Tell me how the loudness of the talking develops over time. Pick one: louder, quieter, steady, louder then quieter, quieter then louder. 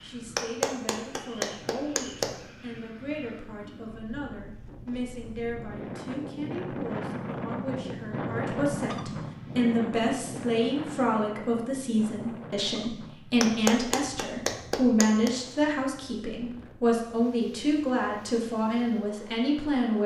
louder.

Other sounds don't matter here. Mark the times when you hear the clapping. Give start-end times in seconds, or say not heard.
0.3-2.3, 13.4-15.3.